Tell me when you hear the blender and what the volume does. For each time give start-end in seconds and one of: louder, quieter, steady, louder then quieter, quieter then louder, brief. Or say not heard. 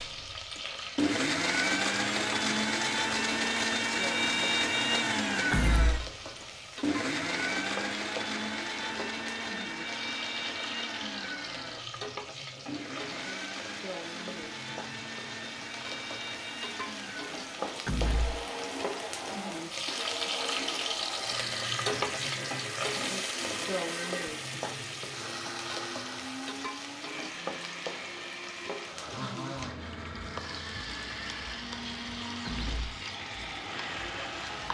0.0-34.6 quieter.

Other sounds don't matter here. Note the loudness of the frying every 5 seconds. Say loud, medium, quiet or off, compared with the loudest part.
medium, medium, medium, medium, loud, medium, medium.